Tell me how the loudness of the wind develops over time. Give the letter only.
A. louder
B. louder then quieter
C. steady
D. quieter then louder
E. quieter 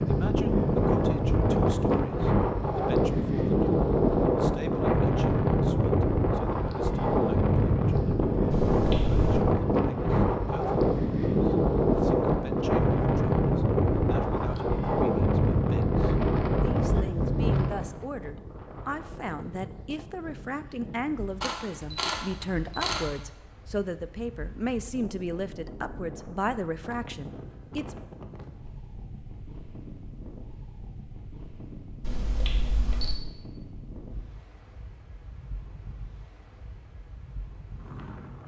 E.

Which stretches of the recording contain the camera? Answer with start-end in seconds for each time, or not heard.
8.5-9.4, 21.4-23.0, 32.0-33.2.